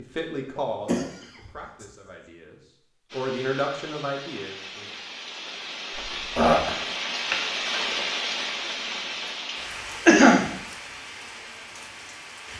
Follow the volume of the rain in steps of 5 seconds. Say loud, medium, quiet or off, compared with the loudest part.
medium, loud, medium.